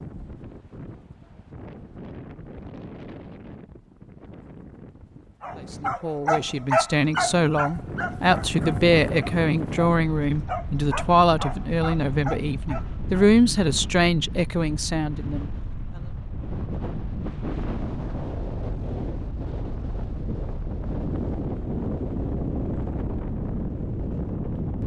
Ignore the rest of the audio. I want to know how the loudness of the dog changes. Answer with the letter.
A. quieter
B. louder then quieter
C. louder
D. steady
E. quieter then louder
A.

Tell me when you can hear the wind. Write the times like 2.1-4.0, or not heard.
0.0-24.8.